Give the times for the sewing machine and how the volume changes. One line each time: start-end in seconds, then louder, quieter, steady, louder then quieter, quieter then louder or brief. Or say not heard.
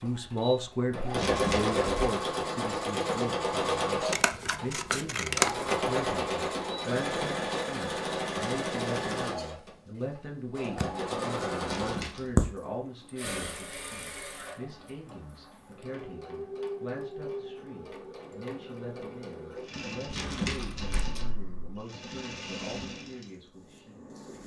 0.0-24.4 quieter.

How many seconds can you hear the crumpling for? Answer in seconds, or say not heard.
3 s.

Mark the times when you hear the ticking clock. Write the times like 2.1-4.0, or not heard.
not heard.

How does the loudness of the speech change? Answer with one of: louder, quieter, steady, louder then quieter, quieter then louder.
quieter.